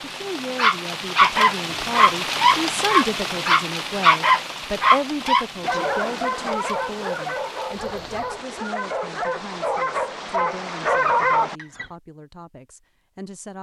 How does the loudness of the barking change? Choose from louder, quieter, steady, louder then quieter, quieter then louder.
quieter then louder.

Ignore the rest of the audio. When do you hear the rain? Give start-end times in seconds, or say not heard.
0.0-8.4.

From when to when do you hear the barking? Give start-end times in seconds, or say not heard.
0.6-11.8.